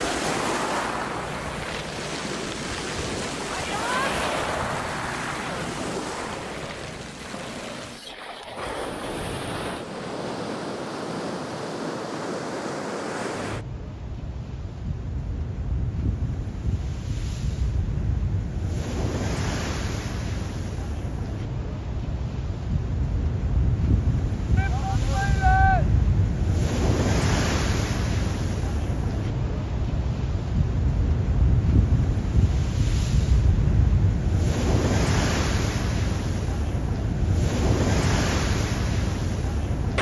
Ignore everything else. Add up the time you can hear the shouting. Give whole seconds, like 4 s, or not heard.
2 s.